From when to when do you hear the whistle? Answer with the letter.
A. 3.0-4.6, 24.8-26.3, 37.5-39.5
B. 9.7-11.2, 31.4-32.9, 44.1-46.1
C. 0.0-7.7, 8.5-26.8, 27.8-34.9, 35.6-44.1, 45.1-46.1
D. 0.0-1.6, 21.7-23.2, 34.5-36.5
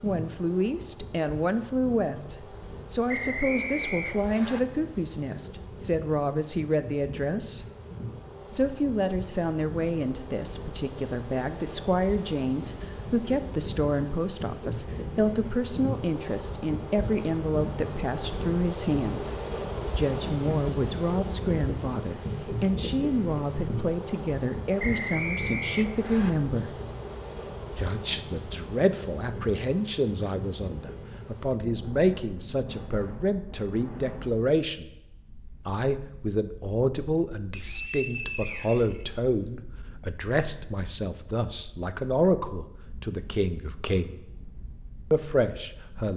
A.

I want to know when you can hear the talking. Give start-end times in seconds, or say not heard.
0.0-7.7, 8.5-26.8, 27.8-34.9, 35.6-44.1, 45.1-46.1.